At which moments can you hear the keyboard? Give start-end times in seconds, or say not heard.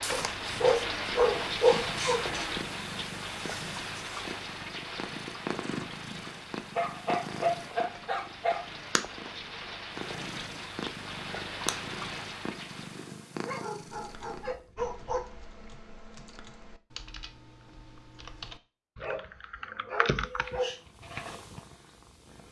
13.8-20.6.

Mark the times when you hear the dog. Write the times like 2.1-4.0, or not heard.
0.1-2.5, 6.8-8.7, 13.4-15.2, 18.9-20.8.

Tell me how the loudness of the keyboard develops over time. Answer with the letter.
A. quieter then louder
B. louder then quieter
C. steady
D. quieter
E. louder
E.